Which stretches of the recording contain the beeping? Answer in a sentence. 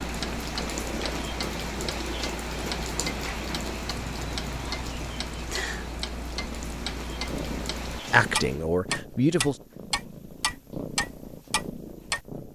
You can't hear the beeping here.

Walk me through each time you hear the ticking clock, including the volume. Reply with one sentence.
The ticking clock can be heard from 0.0 to 12.2 s, getting louder.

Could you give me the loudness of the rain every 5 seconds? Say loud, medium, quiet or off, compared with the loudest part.
loud, medium, off.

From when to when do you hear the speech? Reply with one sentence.
The speech can be heard from 8.0 to 9.6 s.